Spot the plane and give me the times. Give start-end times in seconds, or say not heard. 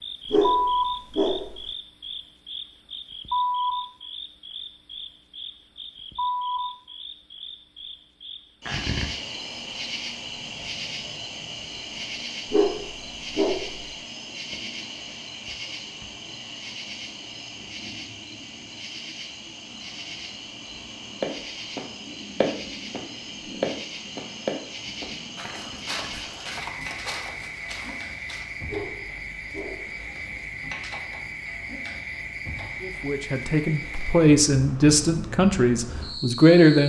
not heard.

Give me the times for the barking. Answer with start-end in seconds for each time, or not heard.
0.2-1.7, 12.5-13.9, 28.6-30.0.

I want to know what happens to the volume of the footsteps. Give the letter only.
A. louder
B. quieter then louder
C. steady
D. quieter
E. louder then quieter
D.